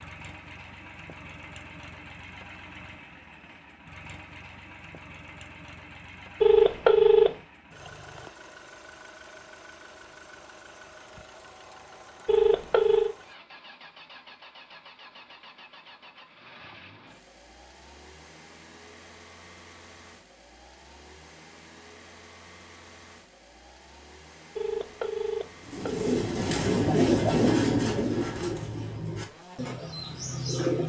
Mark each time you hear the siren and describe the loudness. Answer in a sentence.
You can't hear the siren here.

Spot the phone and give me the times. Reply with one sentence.
You can hear the phone from 6.4 to 7.3 s, from 12.2 to 13.2 s and from 24.6 to 26.3 s.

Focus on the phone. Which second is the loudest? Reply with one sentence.
The volume of the phone peaks at 7 seconds.